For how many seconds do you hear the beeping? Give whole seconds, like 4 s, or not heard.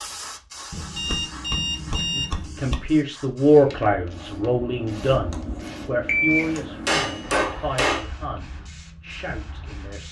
2 s.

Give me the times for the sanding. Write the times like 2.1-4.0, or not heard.
not heard.